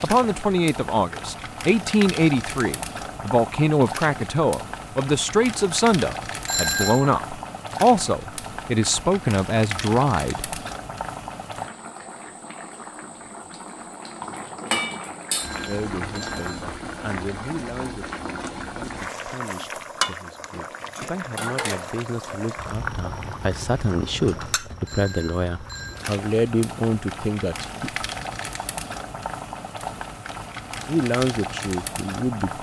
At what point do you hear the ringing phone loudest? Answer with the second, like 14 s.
7 s.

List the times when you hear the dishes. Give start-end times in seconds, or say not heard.
20.5-22.1.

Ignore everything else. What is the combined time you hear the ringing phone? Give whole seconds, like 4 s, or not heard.
3 s.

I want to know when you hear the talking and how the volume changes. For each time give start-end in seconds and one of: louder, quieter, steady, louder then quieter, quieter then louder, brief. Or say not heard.
0.0-10.6 steady
15.7-27.9 quieter then louder
30.9-32.5 brief.